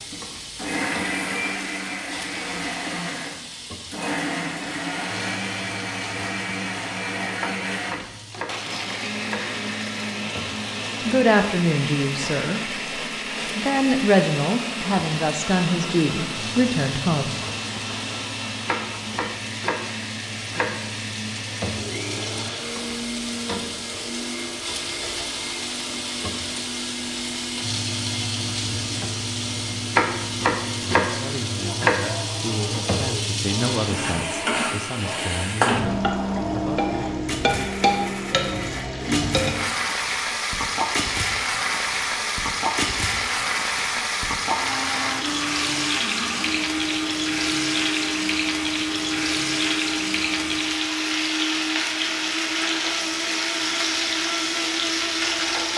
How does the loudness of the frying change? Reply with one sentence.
The volume of the frying goes up.